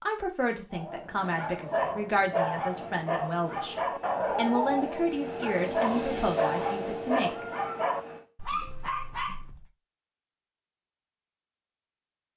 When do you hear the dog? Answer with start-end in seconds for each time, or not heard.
0.7-9.7.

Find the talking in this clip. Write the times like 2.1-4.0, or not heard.
0.0-7.5.